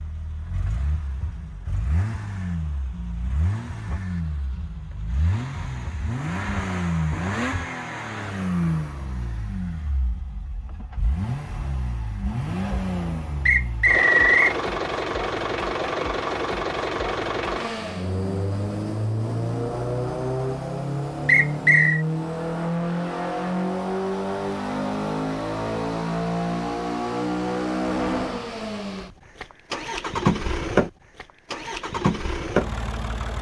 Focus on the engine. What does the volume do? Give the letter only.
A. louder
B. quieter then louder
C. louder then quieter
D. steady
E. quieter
A.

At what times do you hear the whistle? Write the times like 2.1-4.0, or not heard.
13.4-14.6, 21.2-22.1.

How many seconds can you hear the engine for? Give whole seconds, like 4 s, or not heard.
33 s.